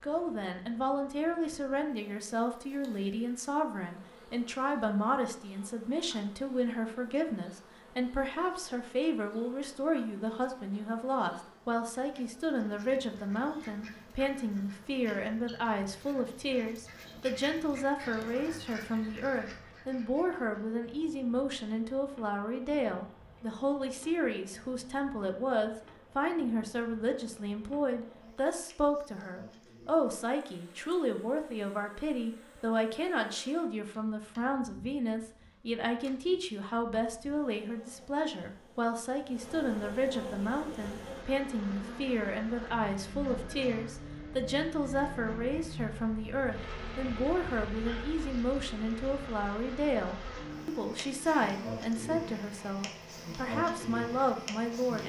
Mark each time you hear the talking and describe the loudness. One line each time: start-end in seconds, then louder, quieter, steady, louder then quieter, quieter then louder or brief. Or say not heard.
0.0-55.0 steady.